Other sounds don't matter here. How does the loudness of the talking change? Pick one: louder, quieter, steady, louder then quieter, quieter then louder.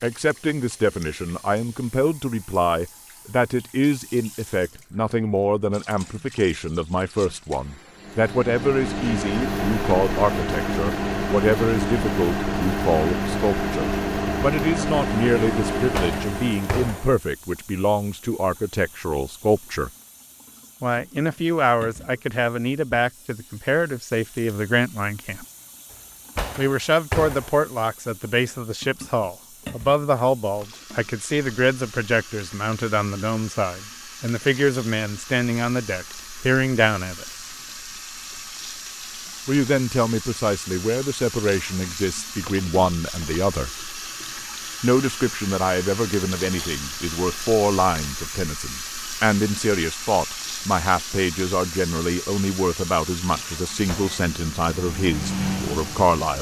steady.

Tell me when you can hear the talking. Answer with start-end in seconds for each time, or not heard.
0.0-19.9, 20.8-25.4, 26.6-37.2, 39.5-43.7, 44.8-56.3.